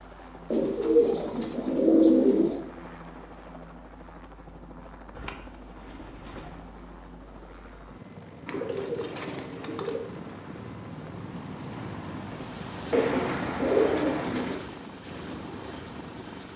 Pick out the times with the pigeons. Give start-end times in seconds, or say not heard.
0.5-2.6, 5.2-6.7, 8.4-10.1, 12.9-14.6.